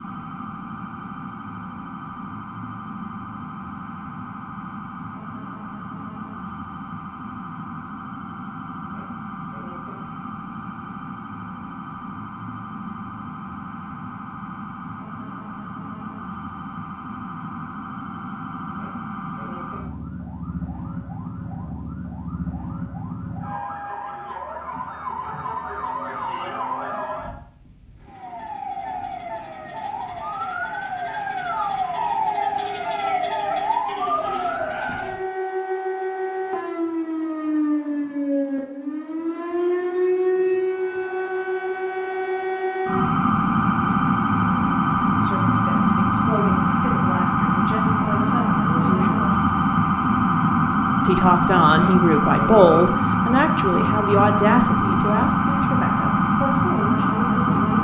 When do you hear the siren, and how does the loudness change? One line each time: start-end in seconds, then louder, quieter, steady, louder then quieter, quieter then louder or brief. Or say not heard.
0.0-57.7 louder.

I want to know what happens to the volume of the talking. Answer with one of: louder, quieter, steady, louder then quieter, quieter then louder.
louder then quieter.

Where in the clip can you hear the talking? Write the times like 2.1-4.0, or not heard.
45.1-49.4, 51.0-57.6.